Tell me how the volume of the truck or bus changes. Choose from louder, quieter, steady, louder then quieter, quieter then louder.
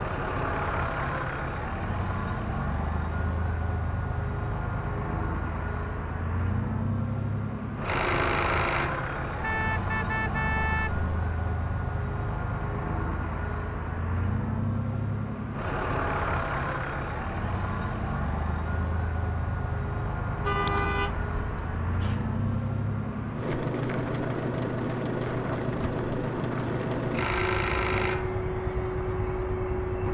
steady.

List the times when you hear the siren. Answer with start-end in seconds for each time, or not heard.
not heard.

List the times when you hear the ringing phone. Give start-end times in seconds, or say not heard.
7.8-9.1, 27.1-28.4.